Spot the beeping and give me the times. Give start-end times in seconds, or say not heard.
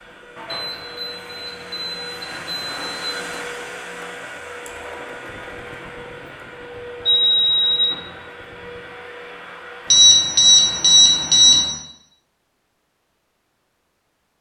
0.5-3.2, 7.0-8.1, 9.9-11.6.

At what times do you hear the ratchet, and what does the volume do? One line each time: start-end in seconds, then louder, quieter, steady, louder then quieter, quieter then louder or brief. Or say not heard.
not heard.